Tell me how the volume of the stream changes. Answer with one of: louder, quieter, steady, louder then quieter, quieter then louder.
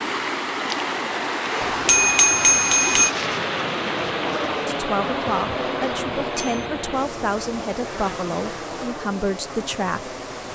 quieter.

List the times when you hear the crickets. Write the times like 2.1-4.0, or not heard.
not heard.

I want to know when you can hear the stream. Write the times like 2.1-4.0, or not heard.
0.0-10.5.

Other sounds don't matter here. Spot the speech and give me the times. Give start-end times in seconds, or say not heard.
4.5-10.2.